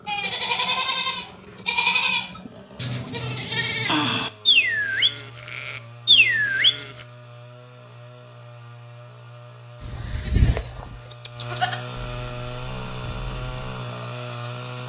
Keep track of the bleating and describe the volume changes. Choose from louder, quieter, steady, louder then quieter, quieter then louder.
quieter.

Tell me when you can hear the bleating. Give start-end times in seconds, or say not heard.
0.1-6.9, 9.8-14.8.